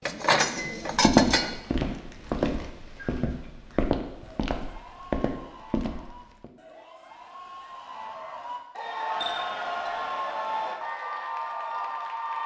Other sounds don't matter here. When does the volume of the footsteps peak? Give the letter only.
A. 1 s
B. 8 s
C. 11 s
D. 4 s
A.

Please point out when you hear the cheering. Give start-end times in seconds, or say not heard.
4.2-12.4.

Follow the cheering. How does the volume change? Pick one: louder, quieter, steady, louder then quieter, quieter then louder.
louder.